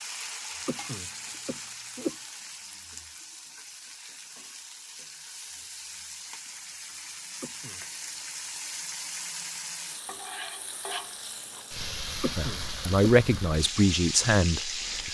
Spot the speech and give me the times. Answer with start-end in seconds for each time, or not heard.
12.3-15.0.